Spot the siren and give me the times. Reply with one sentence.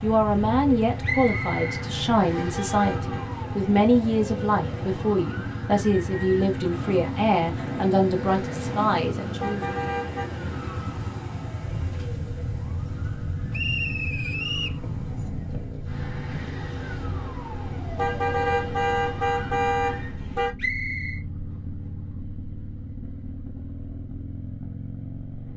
The siren can be heard from 0.0 to 20.2 s.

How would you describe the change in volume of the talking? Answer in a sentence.
The volume of the talking stays about the same.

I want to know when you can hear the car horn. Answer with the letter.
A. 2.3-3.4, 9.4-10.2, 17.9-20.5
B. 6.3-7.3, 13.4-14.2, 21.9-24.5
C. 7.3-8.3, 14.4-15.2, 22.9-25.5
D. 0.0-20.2
A.